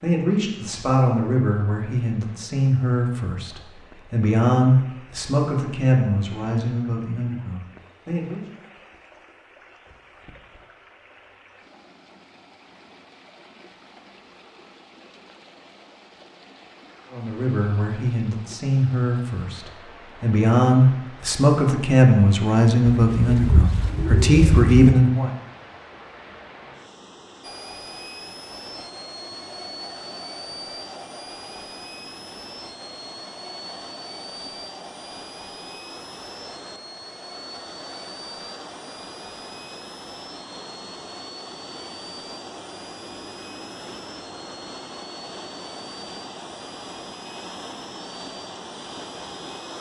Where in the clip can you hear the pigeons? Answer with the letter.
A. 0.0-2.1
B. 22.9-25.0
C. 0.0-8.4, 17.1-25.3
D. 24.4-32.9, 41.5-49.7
B.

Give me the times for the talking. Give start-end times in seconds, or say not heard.
0.0-8.4, 17.1-25.3.